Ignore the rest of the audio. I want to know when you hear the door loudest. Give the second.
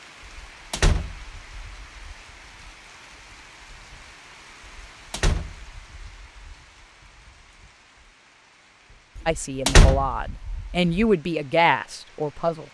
10 s.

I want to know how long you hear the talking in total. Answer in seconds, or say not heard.
3 s.